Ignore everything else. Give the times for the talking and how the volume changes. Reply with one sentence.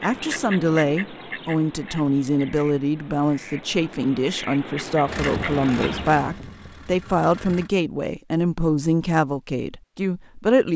You can hear the talking from 0.0 to 10.7 s, at a steady volume.